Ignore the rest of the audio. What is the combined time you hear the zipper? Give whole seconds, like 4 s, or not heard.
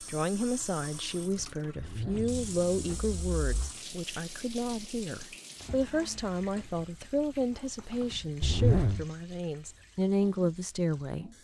3 s.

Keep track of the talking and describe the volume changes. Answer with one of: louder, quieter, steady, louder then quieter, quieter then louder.
steady.